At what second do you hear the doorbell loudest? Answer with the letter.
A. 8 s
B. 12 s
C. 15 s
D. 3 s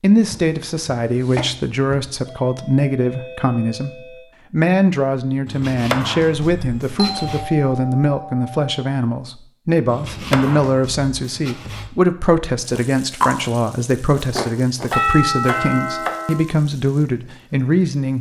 C.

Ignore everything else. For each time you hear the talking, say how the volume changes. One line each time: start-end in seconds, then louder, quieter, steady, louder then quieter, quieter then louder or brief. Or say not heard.
0.0-18.1 steady.